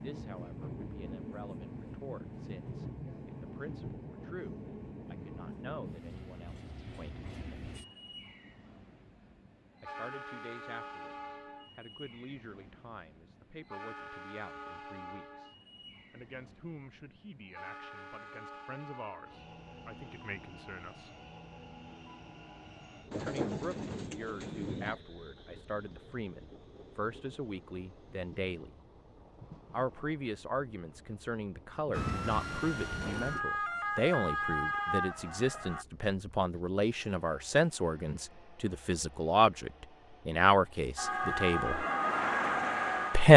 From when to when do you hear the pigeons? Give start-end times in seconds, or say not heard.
23.1-25.0.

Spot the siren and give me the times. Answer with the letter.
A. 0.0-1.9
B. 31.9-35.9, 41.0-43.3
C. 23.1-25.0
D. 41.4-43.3
B.